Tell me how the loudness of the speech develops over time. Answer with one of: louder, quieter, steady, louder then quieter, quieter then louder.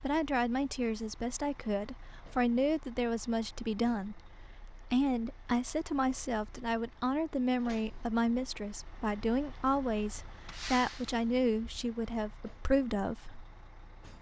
steady.